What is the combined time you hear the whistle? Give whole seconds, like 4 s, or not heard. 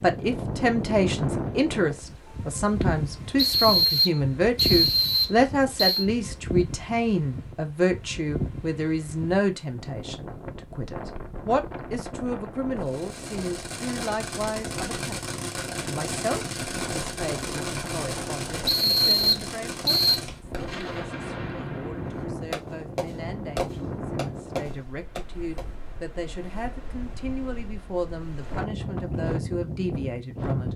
4 s.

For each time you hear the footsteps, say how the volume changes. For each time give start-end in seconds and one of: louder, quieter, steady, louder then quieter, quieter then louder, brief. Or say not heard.
not heard.